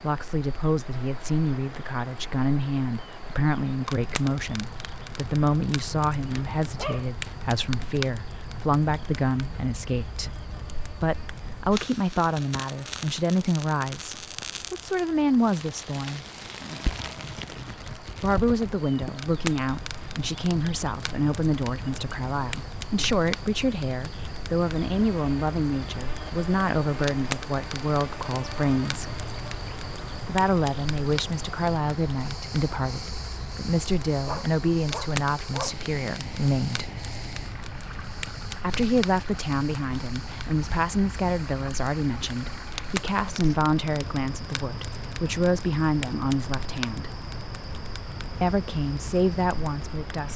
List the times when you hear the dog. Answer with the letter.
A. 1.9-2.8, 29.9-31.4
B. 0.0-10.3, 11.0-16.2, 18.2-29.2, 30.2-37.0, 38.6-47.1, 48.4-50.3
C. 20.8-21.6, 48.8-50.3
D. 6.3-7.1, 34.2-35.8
D.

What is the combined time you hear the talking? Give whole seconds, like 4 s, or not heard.
44 s.